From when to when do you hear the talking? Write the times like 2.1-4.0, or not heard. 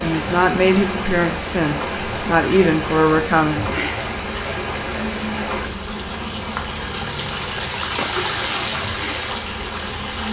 0.0-3.8.